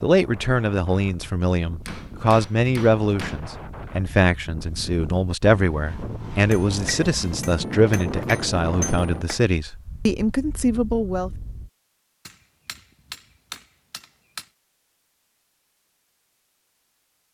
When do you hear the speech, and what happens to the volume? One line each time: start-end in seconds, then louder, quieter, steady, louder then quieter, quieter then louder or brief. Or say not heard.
0.0-11.3 steady.